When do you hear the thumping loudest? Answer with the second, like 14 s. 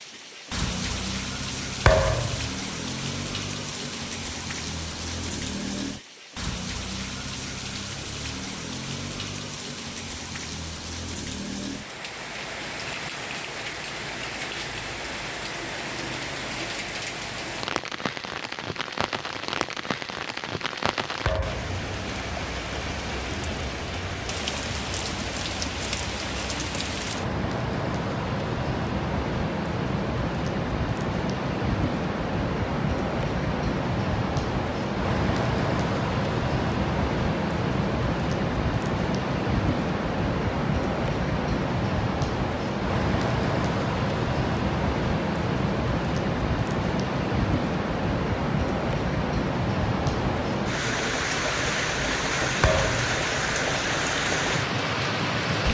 2 s.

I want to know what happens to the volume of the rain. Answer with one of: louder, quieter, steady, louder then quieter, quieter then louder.
louder.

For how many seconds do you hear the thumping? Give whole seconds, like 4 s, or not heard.
2 s.